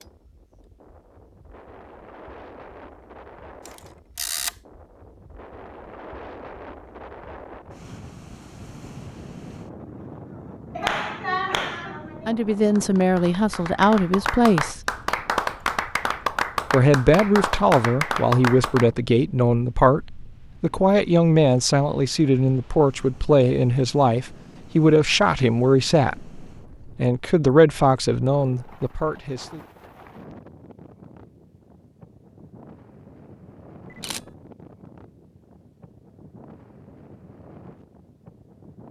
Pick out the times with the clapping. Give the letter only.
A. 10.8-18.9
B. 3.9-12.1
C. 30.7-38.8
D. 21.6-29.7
A.